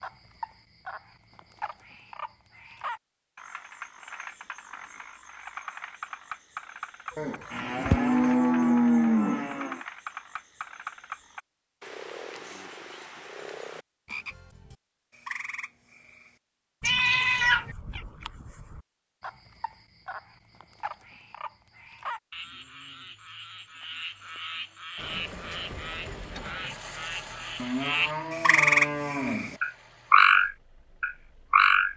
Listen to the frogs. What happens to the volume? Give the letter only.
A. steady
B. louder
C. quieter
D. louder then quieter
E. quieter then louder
B.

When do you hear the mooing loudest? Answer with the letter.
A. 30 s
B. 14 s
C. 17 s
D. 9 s
D.